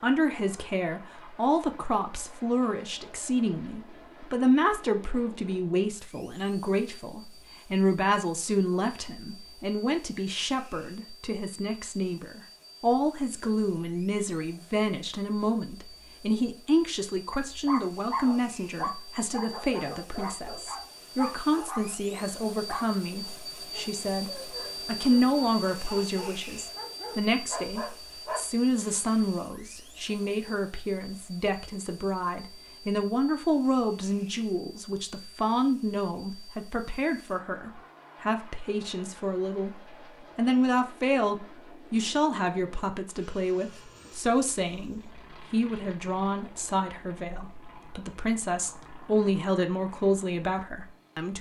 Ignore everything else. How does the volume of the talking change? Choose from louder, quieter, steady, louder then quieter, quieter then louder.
steady.